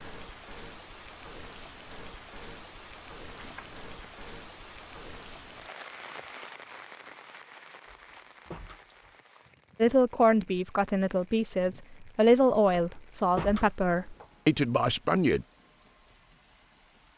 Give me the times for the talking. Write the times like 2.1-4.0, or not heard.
9.8-15.4.